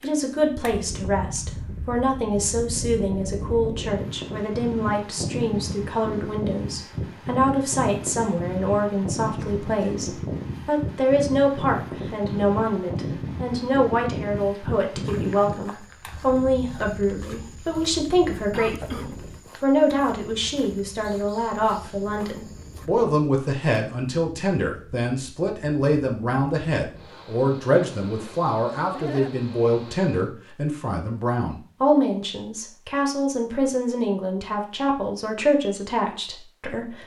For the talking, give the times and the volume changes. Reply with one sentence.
The talking can be heard from 0.0 to 37.0 s, at a steady volume.